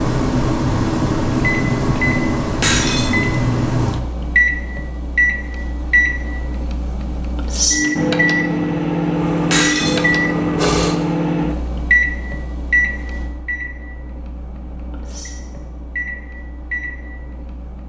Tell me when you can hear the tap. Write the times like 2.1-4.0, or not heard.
9.1-10.9.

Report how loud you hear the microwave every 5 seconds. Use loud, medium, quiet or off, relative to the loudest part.
loud, loud, loud, quiet.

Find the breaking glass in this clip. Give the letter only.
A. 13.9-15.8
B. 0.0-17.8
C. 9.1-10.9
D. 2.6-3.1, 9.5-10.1
D.